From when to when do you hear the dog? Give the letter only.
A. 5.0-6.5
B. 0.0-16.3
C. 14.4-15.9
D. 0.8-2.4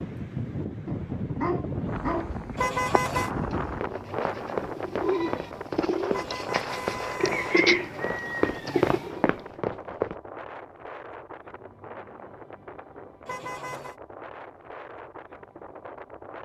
D.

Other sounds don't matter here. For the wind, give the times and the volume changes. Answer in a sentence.
You can hear the wind from 0.0 to 16.3 s, getting quieter.